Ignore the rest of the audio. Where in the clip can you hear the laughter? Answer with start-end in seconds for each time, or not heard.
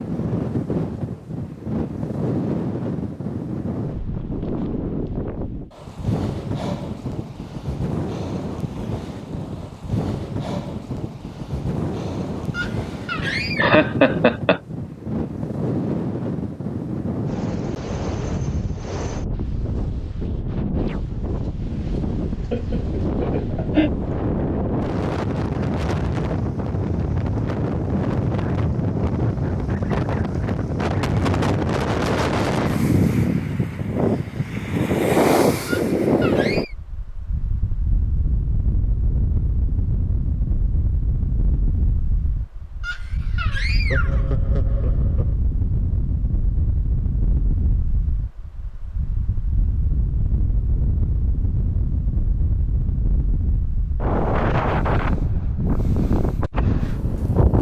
13.2-14.6, 22.5-23.9, 43.6-45.4.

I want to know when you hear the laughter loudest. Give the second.
14 s.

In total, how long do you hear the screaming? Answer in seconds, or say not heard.
4 s.